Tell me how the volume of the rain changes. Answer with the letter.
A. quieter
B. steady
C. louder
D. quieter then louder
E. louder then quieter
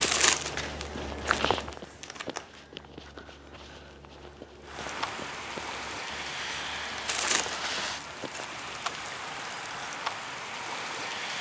B.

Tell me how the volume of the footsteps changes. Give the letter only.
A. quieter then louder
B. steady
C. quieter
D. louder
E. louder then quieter
C.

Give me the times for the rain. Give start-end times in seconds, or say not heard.
4.6-11.3.